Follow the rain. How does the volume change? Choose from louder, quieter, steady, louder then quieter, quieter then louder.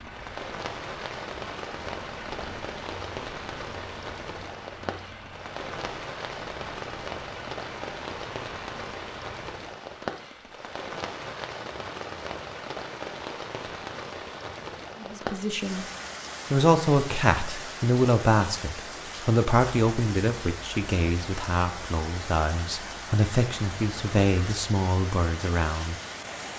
steady.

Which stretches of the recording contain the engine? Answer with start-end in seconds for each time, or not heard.
0.0-9.6.